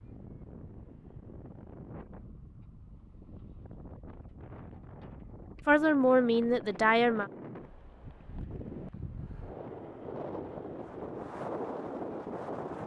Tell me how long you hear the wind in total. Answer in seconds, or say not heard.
13 s.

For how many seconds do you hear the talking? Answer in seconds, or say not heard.
2 s.